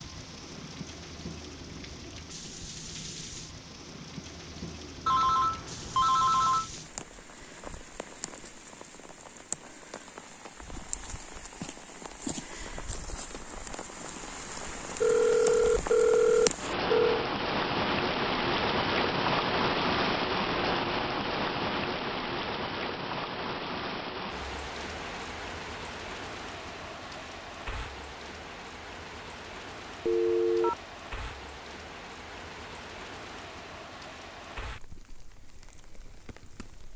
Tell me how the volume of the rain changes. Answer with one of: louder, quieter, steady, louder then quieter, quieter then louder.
louder then quieter.